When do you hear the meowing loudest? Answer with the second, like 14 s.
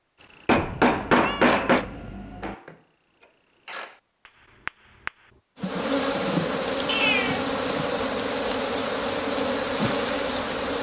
7 s.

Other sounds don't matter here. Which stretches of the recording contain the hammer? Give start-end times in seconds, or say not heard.
0.5-5.4.